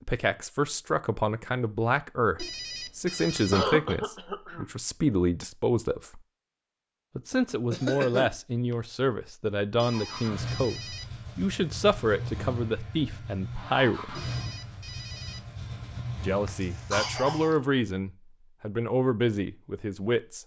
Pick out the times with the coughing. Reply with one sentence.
You can hear the coughing from 3.0 to 4.7 s, from 7.7 to 8.8 s and from 16.4 to 17.6 s.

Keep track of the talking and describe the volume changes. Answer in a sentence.
The volume of the talking stays about the same.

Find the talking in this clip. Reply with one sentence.
The talking can be heard from 0.0 to 6.2 s, from 7.2 to 14.2 s and from 16.2 to 20.4 s.